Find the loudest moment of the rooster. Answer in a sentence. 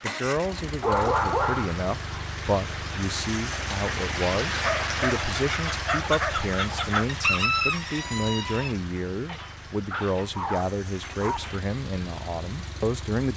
The loudest moment of the rooster is at 7 seconds.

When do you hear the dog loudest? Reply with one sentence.
The volume of the dog peaks at 1 second.